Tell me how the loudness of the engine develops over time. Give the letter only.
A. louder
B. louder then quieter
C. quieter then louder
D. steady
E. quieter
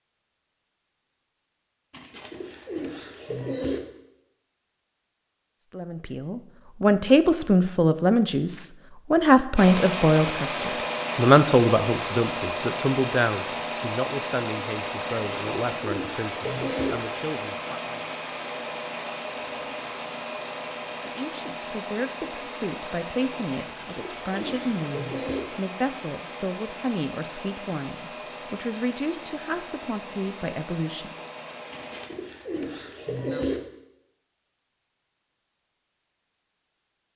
E.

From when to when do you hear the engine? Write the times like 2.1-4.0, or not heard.
9.6-32.0.